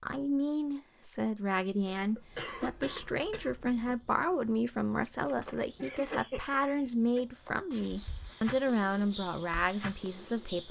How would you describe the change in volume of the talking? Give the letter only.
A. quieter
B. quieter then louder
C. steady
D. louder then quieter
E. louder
C.